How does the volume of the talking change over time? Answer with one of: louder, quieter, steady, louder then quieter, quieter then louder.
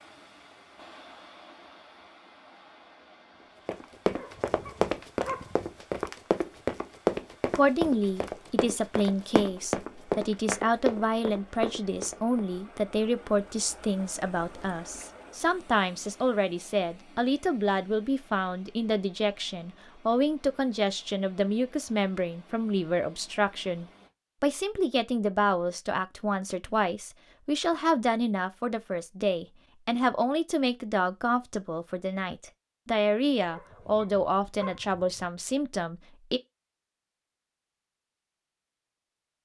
steady.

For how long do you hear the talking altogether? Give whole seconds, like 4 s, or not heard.
29 s.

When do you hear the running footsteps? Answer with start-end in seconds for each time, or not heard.
3.6-12.4.